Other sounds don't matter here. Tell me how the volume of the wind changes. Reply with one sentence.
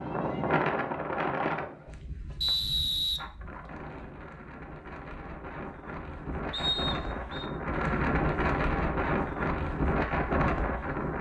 The loudness of the wind goes down, then up.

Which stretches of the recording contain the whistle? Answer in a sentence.
You can hear the whistle from 2.4 to 3.2 s and from 6.5 to 7.5 s.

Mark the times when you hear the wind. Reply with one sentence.
You can hear the wind from 0.0 to 11.1 s.